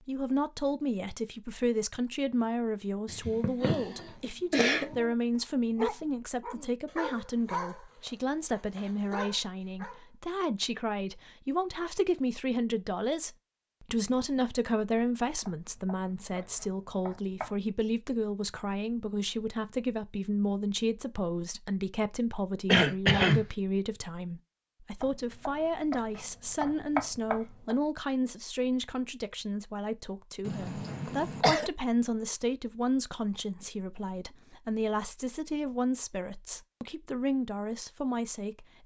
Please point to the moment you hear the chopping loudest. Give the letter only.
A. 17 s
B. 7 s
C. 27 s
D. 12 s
C.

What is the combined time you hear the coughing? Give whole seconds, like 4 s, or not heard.
4 s.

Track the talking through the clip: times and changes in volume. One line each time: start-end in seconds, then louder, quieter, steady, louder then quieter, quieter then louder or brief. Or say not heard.
0.1-38.8 steady.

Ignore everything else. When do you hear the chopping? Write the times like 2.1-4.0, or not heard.
15.4-17.6, 25.0-27.8.